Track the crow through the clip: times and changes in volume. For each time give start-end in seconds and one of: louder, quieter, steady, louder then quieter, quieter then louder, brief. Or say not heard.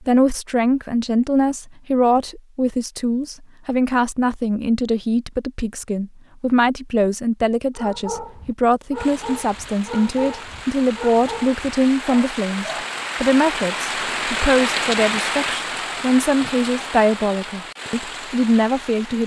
not heard.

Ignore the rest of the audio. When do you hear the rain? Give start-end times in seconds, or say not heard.
8.9-19.2.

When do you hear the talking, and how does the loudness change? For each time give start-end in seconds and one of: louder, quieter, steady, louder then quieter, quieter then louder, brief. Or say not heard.
0.0-19.2 steady.